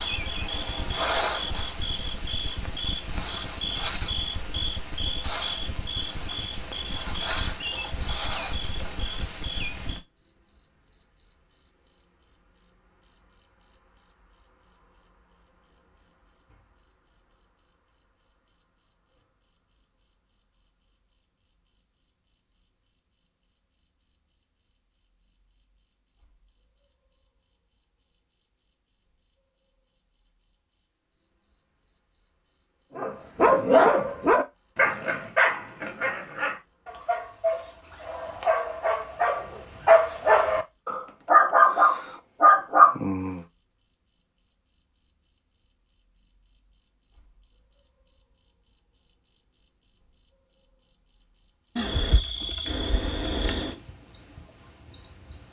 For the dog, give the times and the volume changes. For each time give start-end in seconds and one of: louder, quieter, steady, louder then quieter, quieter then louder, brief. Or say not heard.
33.0-43.4 quieter then louder.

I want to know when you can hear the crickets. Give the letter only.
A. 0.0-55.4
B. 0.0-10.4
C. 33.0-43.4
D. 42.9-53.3
A.